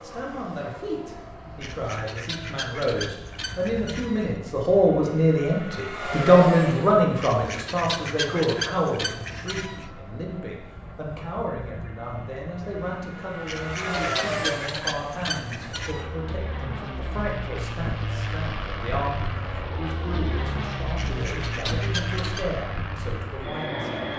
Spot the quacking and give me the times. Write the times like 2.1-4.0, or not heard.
1.6-4.3, 7.2-9.9, 13.4-16.1, 20.9-22.4.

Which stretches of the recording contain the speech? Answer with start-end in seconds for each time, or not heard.
0.0-24.1.